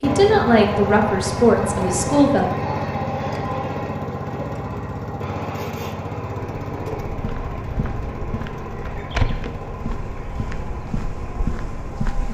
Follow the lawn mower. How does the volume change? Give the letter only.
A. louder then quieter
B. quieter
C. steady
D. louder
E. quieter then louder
B.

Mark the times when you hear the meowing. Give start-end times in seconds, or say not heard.
not heard.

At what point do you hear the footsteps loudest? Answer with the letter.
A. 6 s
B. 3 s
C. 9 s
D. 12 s
C.